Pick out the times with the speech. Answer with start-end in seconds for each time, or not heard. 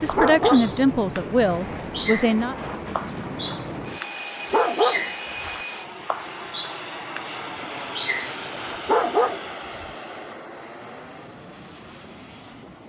0.0-2.5.